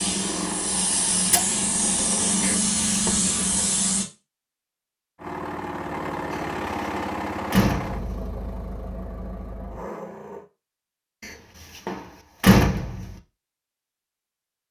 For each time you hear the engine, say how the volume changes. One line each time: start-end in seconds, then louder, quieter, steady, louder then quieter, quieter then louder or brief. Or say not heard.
0.0-2.6 brief
5.2-10.4 quieter.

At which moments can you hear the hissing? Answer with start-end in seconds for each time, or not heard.
0.0-4.0.